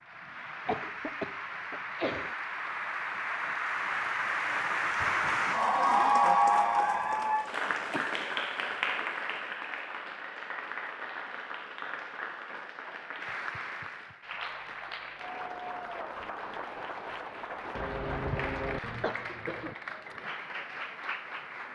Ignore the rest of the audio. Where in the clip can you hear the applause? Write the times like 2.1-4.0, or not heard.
0.0-21.7.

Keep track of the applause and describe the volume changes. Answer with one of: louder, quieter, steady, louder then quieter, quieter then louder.
louder then quieter.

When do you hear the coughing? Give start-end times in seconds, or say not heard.
0.7-2.4, 7.7-8.2, 17.8-19.8.